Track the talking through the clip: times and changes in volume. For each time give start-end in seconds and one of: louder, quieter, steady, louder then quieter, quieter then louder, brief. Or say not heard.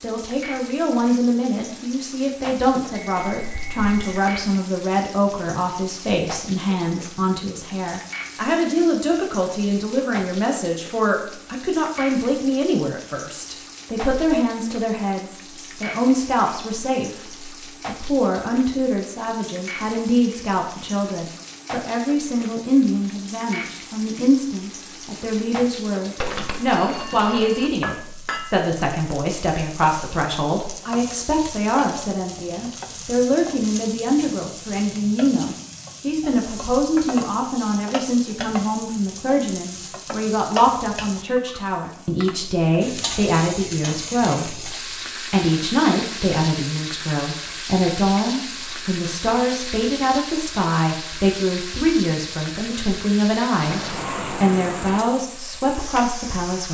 0.0-56.6 steady.